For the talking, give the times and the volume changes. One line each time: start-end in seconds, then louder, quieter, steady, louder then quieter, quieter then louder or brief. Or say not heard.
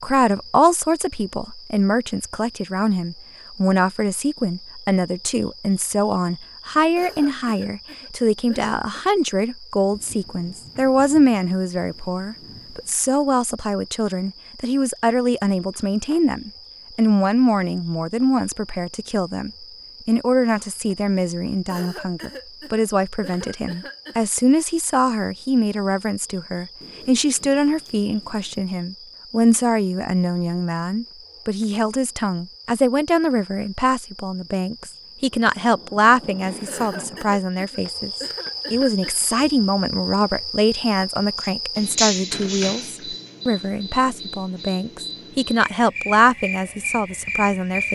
0.0-47.8 steady.